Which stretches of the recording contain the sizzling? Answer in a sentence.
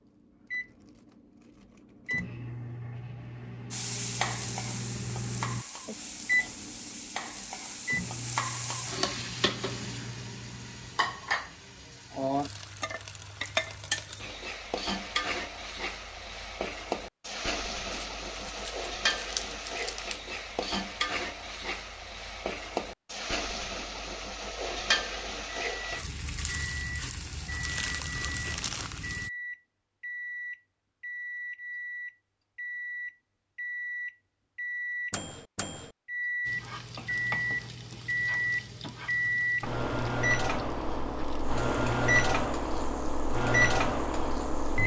You can hear the sizzling from 3.7 to 29.3 s and from 36.5 to 44.8 s.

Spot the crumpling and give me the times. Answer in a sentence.
The crumpling can be heard from 17.9 to 20.2 s and from 27.6 to 29.1 s.